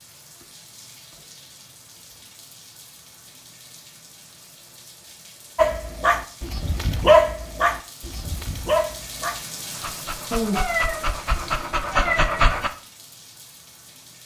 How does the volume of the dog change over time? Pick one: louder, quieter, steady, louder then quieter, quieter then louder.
quieter then louder.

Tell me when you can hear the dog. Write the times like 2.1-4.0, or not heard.
5.5-12.7.